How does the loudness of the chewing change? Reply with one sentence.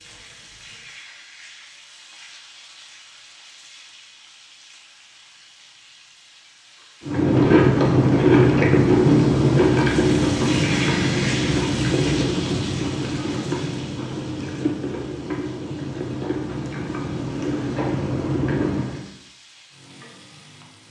The loudness of the chewing goes down.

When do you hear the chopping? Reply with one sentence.
The chopping can't be heard in this clip.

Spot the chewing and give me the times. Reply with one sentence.
The chewing can be heard from 7.0 to 19.1 s.